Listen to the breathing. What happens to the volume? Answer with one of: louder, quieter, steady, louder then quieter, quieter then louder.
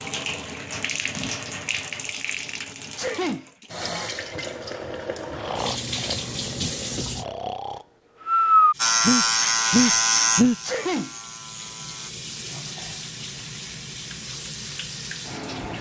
louder.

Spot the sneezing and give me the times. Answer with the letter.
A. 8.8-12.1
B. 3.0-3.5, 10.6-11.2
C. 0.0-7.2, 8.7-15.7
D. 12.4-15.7
B.